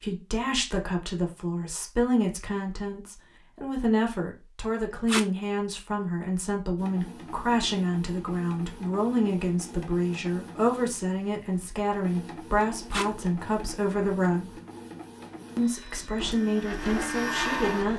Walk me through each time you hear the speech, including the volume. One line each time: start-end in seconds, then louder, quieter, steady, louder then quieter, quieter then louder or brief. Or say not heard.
0.0-14.6 steady
15.6-17.9 brief.